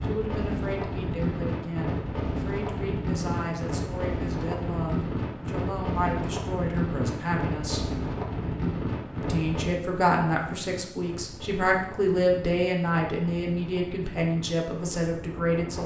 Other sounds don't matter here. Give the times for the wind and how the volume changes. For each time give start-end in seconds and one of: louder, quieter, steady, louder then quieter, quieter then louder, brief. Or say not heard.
0.0-15.8 quieter.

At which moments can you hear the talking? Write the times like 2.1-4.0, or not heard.
0.0-8.0, 9.2-15.8.